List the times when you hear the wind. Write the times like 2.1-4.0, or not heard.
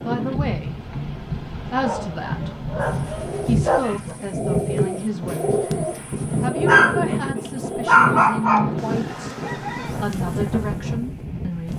0.0-11.7.